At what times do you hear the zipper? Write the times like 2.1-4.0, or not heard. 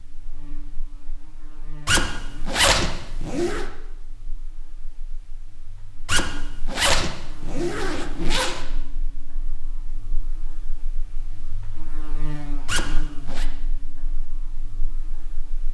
1.9-3.6, 6.0-8.6, 12.7-13.4.